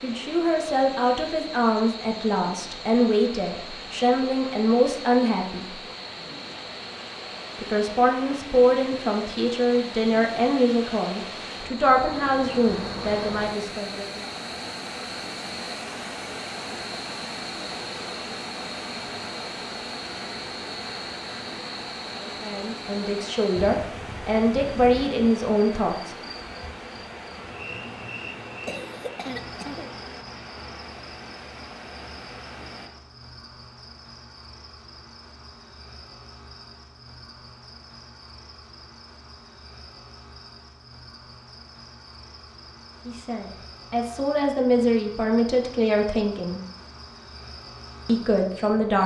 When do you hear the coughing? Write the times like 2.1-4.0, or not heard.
28.6-29.9.